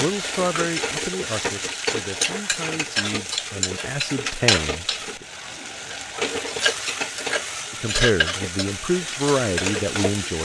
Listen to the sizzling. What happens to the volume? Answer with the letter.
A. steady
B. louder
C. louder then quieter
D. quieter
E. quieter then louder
A.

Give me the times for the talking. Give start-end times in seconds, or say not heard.
0.0-5.2, 7.7-10.4.